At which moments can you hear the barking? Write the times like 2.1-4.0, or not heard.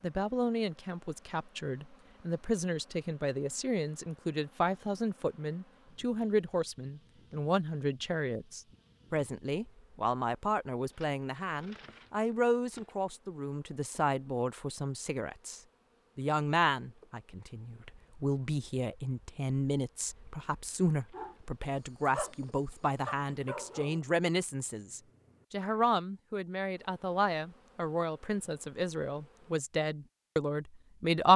21.1-25.8.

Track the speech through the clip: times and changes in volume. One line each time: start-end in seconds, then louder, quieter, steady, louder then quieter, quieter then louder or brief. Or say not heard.
0.0-31.3 steady.